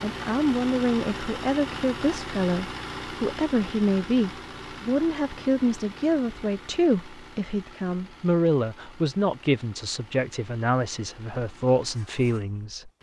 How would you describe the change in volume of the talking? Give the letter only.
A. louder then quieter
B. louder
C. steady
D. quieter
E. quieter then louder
C.